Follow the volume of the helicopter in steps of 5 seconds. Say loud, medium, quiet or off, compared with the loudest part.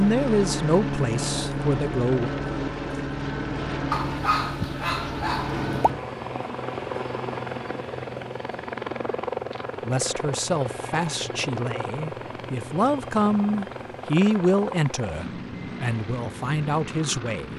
loud, loud, medium, medium.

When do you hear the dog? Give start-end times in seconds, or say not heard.
3.9-5.7.